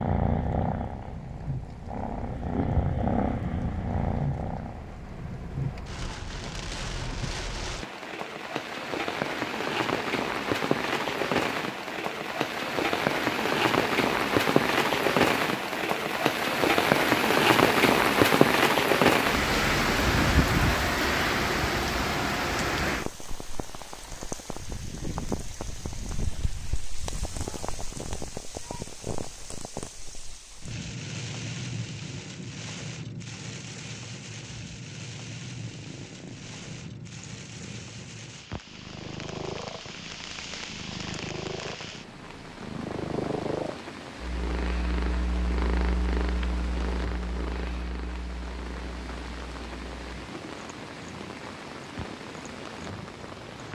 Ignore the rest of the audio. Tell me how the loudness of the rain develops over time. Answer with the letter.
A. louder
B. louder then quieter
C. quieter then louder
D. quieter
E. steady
B.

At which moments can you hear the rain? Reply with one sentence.
You can hear the rain from 0.0 to 53.7 s.